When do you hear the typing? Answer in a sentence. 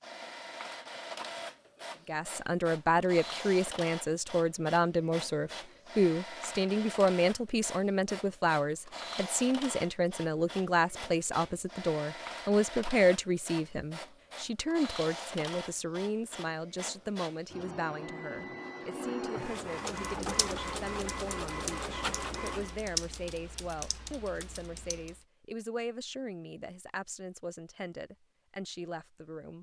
You can hear the typing from 19.9 to 25.1 s.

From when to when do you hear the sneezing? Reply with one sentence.
The sneezing can't be heard in this clip.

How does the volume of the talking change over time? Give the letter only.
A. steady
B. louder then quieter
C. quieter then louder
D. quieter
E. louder
D.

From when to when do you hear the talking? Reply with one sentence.
The talking can be heard from 2.0 to 29.5 s.